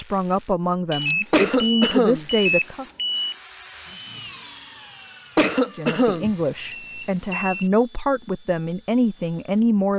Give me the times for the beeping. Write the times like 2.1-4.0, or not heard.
0.9-3.4, 6.2-7.7.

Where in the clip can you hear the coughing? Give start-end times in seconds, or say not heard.
1.3-2.2, 5.3-6.3.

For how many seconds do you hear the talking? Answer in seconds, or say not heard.
7 s.